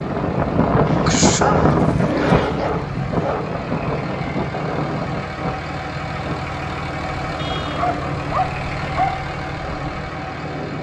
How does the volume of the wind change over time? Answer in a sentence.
The loudness of the wind goes down.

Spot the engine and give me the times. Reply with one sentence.
The engine can be heard from 0.0 to 10.7 s.